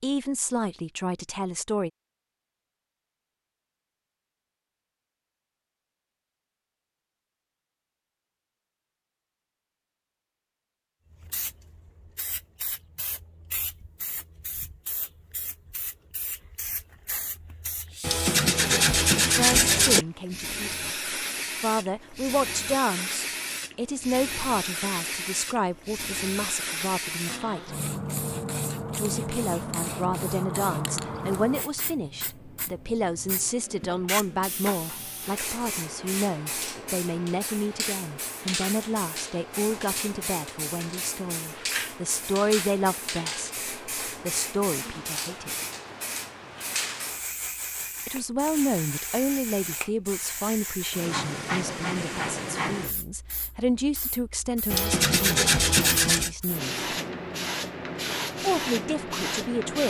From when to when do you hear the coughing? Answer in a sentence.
You can't hear the coughing here.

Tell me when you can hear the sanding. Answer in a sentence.
The sanding can be heard from 18.0 to 20.1 s and from 54.7 to 56.3 s.